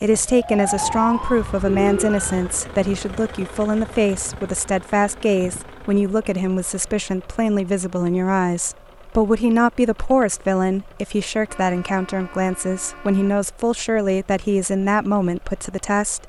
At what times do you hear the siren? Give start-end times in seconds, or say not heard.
0.2-2.5.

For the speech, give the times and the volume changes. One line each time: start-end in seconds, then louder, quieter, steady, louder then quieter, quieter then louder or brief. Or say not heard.
0.0-16.2 steady.